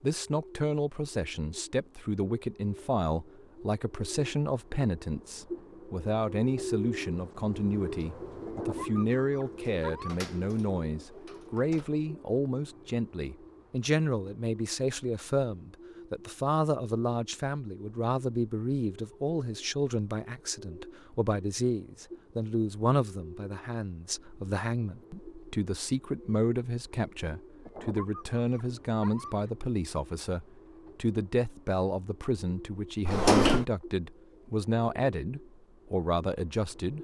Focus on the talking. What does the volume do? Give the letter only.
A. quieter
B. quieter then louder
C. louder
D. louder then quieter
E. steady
E.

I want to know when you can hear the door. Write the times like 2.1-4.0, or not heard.
9.6-11.9, 33.0-33.6.